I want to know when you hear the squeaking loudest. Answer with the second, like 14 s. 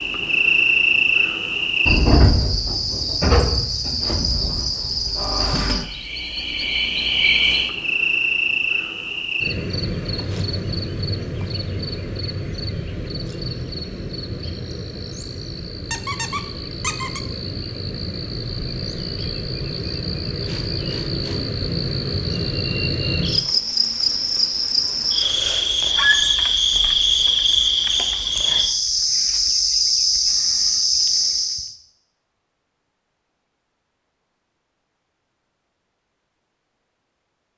26 s.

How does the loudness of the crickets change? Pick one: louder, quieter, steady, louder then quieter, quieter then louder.
quieter then louder.